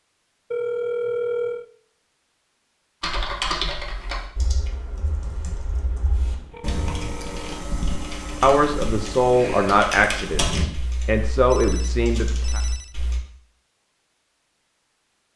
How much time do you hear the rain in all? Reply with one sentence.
The rain can't be heard in this clip.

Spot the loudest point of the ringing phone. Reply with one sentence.
The loudest moment of the ringing phone is at 1 second.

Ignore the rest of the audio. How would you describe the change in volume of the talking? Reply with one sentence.
The loudness of the talking goes down, then up.